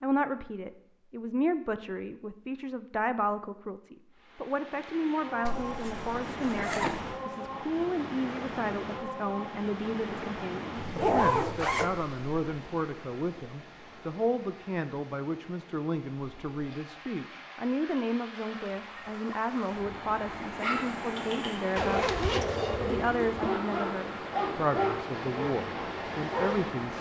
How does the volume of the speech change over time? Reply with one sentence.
The volume of the speech stays about the same.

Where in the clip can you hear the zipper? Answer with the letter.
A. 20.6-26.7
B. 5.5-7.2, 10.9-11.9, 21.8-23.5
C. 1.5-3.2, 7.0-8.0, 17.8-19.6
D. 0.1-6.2
B.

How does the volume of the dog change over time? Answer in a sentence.
The volume of the dog goes up, then down.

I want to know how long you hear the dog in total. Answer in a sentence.
The dog can be heard for 6 seconds in total.